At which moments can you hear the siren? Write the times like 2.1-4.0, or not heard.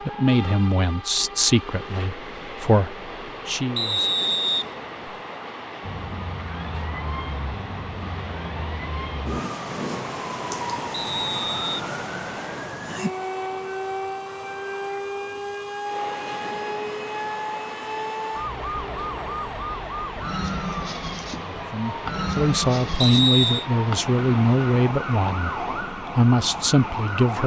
5.8-27.4.